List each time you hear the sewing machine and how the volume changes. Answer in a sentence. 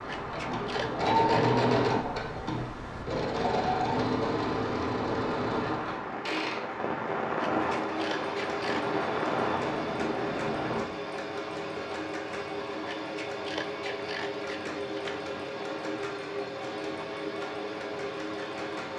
The sewing machine can be heard from 0.0 to 18.9 s, getting quieter.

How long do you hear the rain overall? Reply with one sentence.
The rain can be heard for 11 seconds in total.